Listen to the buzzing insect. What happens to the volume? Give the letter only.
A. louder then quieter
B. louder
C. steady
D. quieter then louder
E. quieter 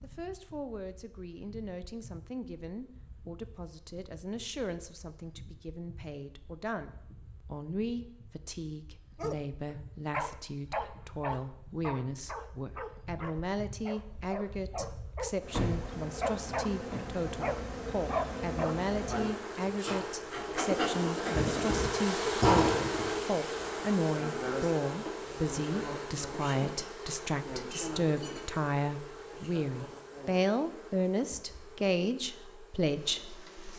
A.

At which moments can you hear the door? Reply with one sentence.
You can hear the door from 15.5 to 17.1 s.